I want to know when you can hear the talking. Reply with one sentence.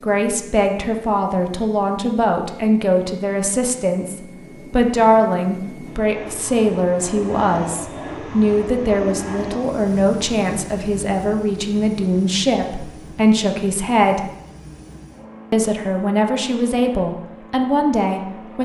You can hear the talking from 0.0 to 14.3 s and from 15.5 to 18.5 s.